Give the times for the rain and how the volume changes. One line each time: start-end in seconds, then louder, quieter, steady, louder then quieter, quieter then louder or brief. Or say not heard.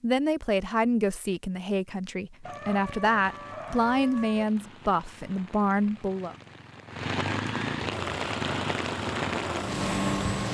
2.4-10.4 louder.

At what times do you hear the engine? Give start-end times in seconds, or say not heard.
7.9-10.4.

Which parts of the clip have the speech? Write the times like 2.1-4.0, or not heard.
0.0-6.3.